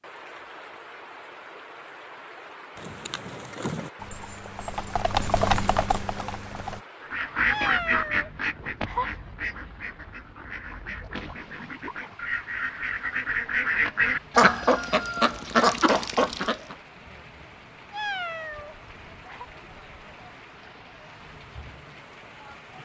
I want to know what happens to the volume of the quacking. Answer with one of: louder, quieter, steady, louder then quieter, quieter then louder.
quieter then louder.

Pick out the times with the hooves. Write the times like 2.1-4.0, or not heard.
2.8-6.8.